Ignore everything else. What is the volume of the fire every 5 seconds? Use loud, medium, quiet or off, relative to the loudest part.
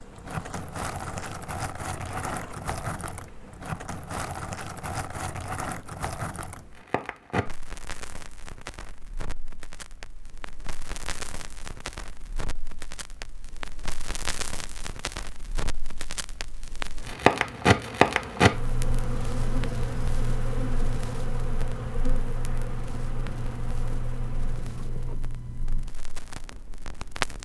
medium, medium, quiet, loud, medium, medium.